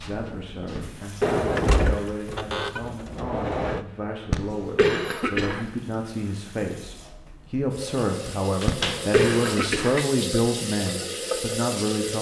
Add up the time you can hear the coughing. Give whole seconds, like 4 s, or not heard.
4 s.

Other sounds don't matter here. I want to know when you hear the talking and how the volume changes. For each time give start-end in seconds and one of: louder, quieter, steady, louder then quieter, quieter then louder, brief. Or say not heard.
0.0-12.1 louder.